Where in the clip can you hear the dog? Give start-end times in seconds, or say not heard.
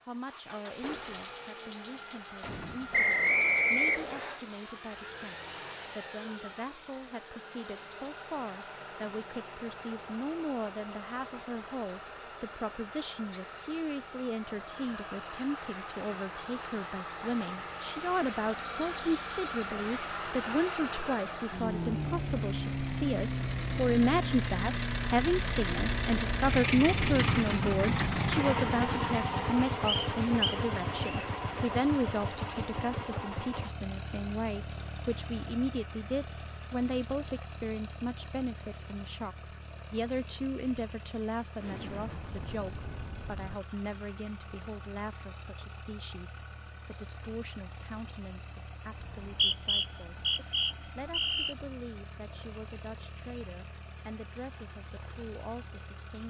not heard.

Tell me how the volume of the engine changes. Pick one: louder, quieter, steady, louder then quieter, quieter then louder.
louder then quieter.